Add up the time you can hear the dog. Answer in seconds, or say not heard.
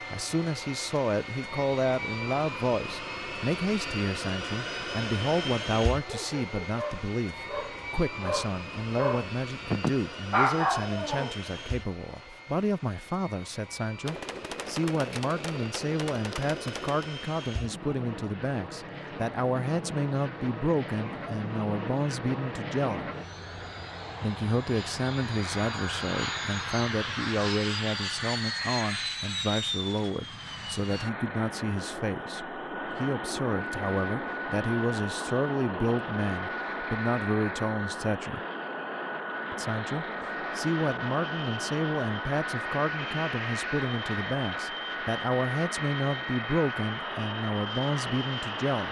5 s.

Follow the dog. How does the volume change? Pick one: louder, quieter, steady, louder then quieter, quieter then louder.
louder.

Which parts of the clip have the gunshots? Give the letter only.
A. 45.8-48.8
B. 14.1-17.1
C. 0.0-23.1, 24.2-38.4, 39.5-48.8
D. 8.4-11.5
B.